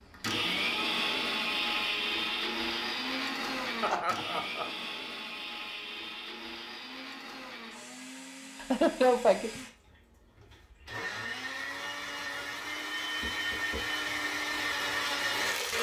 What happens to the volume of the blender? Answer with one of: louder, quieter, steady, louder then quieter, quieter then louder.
quieter then louder.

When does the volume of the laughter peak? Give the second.
9 s.